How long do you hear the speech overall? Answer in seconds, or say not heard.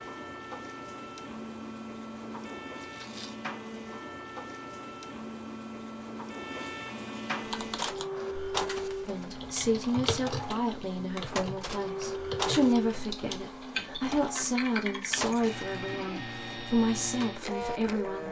9 s.